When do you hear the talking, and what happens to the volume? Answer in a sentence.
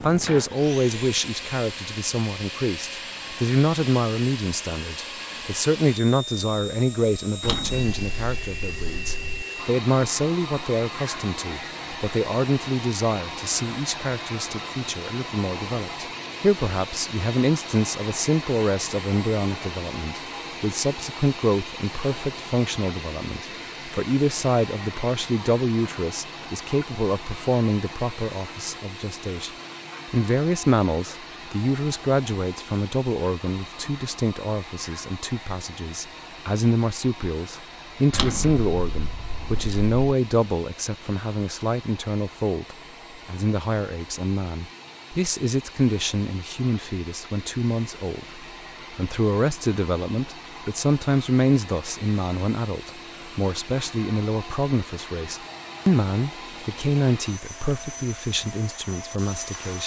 You can hear the talking from 0.0 to 29.5 s, at a steady volume; and from 30.1 to 59.8 s, at a steady volume.